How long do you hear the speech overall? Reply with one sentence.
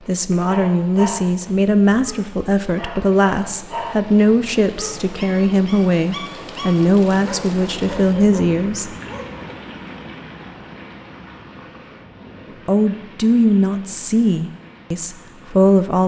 The speech can be heard for 12 seconds in total.